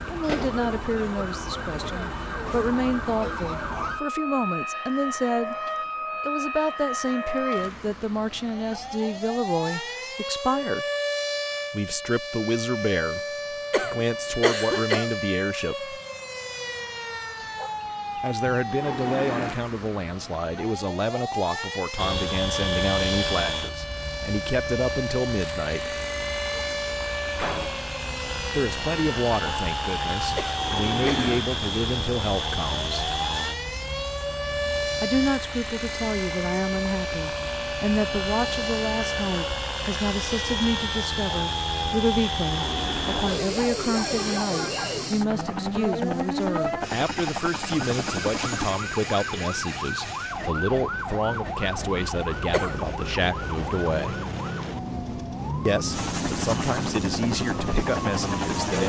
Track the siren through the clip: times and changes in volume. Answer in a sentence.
You can hear the siren from 0.0 to 58.8 s, at a steady volume.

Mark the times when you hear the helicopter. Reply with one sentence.
You can hear the helicopter from 21.9 to 48.8 s and from 55.9 to 58.8 s.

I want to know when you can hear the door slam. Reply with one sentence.
The door slam can be heard from 27.4 to 27.8 s.